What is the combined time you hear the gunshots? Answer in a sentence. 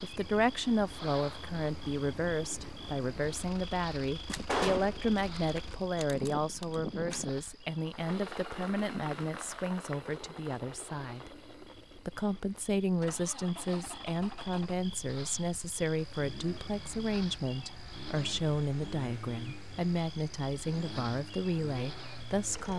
You can hear the gunshots for 3 seconds altogether.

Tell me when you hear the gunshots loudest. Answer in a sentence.
The loudest moment of the gunshots is at 5 seconds.